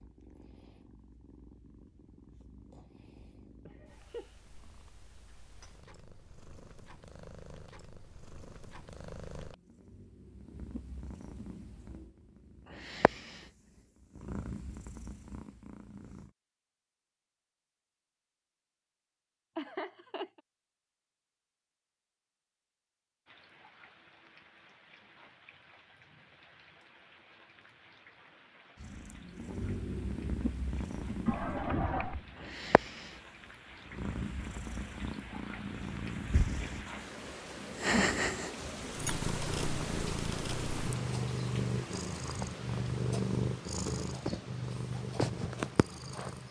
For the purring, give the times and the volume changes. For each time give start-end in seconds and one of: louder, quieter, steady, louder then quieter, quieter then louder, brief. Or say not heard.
0.0-16.3 louder
28.8-46.4 louder.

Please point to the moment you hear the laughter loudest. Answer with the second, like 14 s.
32 s.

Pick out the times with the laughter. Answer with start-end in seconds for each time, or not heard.
3.6-4.3, 19.6-20.4, 31.2-32.2.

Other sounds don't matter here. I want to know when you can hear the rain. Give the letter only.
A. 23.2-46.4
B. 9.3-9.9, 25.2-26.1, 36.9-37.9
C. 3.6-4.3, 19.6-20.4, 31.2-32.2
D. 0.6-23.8
A.